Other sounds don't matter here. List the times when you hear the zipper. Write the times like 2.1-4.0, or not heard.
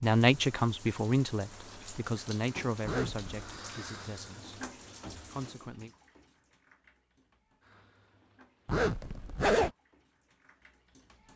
2.9-3.5, 8.7-9.7.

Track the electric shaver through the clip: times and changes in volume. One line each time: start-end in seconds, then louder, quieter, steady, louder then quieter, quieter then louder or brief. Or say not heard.
not heard.